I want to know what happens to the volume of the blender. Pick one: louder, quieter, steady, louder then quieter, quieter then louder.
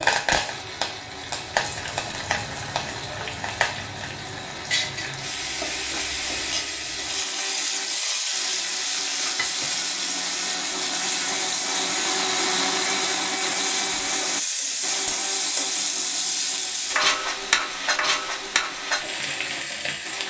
louder then quieter.